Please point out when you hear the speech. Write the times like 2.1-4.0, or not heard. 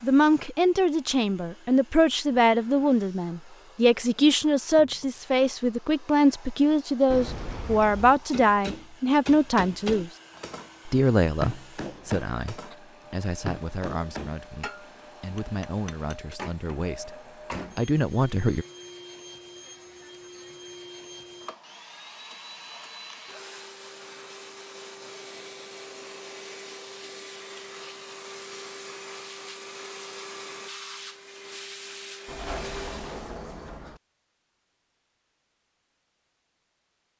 0.0-10.1, 10.8-17.1, 17.8-18.6.